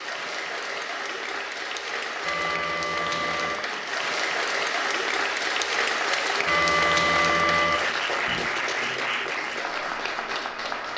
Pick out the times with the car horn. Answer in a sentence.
You can hear the car horn from 2.2 to 3.6 s and from 6.5 to 8.5 s.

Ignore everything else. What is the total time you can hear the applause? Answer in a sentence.
The applause can be heard for 11 seconds in total.